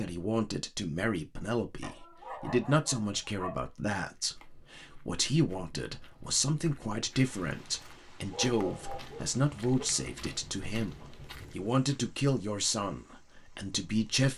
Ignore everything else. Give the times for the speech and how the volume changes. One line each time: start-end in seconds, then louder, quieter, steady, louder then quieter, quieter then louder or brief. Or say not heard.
0.0-14.3 steady.